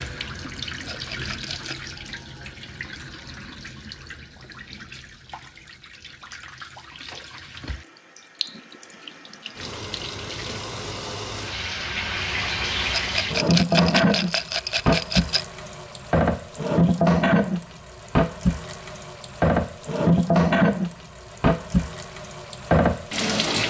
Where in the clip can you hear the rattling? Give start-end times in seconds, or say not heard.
0.8-1.8, 12.9-15.4.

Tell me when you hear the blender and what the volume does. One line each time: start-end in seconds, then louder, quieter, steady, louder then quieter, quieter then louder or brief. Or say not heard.
not heard.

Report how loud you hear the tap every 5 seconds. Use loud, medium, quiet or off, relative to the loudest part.
quiet, quiet, loud, loud, loud.